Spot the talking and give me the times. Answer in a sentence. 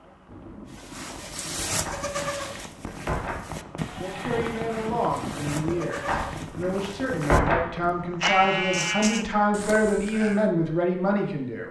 You can hear the talking from 4.0 to 11.6 s.